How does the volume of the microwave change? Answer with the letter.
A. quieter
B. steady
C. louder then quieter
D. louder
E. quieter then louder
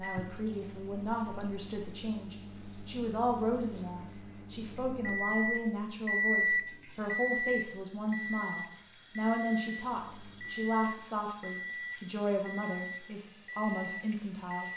C.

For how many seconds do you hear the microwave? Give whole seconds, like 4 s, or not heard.
15 s.